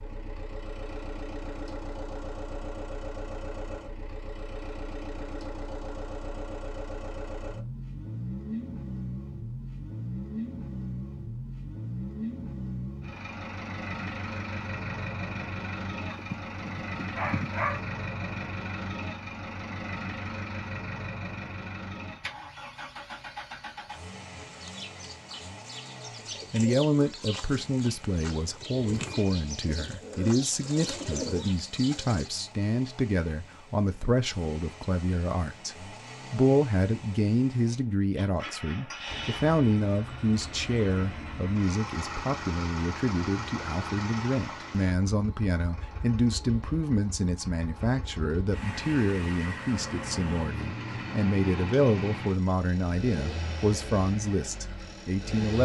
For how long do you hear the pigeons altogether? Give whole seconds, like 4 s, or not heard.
8 s.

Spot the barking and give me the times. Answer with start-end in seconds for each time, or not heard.
16.1-17.8.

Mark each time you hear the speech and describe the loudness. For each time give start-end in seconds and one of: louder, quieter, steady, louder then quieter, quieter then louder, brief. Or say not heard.
26.5-55.5 steady.